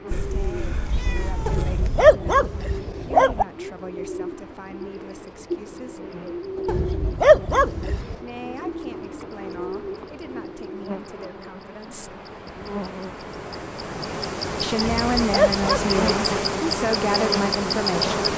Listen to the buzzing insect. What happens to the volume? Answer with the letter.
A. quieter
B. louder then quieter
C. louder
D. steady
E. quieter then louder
C.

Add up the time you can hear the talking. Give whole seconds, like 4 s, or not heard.
14 s.